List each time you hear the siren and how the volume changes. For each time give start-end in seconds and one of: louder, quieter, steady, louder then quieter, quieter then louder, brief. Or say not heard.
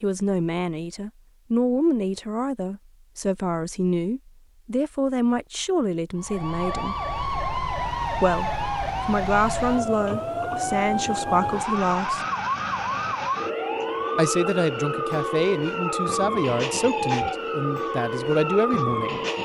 6.2-19.4 steady.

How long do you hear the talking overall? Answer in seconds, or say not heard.
16 s.